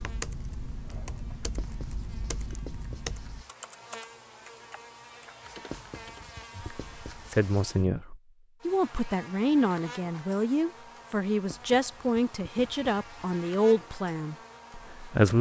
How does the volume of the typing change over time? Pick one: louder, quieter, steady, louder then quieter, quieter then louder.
quieter.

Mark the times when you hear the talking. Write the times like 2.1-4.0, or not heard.
6.5-15.3.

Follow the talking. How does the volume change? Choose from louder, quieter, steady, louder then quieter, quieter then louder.
steady.